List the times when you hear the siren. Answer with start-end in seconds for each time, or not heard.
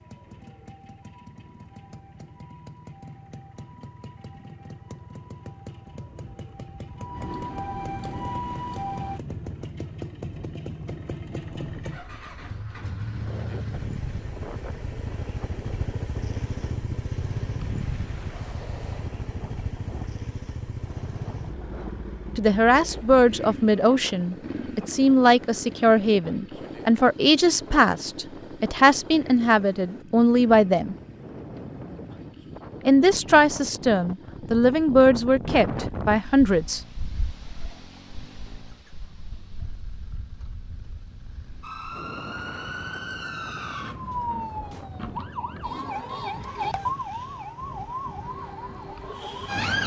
0.0-9.2, 41.6-49.8.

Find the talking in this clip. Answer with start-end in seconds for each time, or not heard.
22.4-30.9, 32.9-36.8.